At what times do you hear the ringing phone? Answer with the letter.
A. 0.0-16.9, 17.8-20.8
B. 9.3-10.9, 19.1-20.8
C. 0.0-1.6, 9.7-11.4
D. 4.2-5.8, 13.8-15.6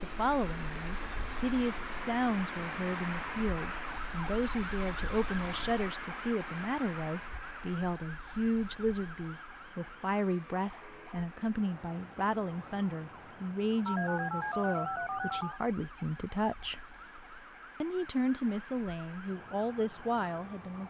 D.